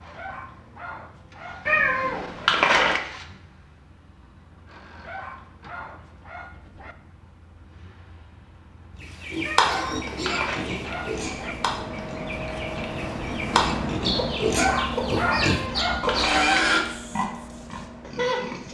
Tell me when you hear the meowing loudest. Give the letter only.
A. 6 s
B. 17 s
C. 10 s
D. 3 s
D.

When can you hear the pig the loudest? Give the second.
17 s.